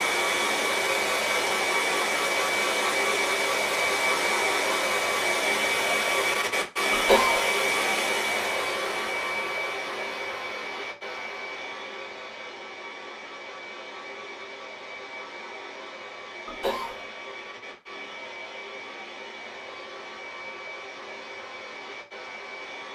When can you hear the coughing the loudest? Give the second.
7 s.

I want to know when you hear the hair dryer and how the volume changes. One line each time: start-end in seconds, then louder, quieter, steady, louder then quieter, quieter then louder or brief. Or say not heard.
0.0-22.9 quieter.